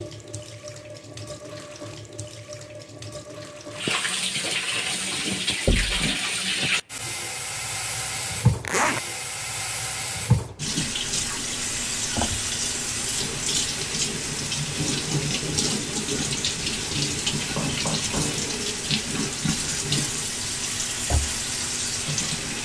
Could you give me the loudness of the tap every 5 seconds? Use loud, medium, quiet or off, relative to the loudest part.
medium, loud, loud, loud, loud.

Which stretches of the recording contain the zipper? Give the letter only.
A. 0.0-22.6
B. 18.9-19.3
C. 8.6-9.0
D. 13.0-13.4
C.